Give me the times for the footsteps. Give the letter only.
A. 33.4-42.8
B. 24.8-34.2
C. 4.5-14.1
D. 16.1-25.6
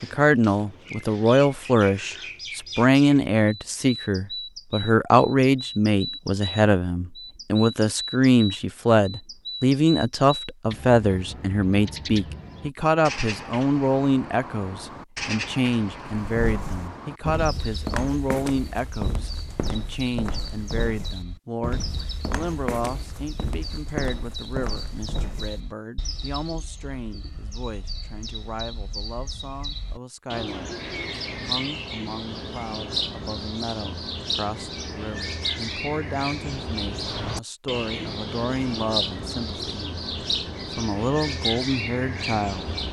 D.